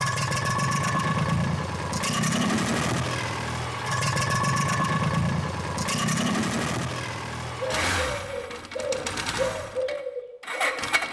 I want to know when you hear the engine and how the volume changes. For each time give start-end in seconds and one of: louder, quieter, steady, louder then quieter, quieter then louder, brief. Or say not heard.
0.0-11.0 quieter.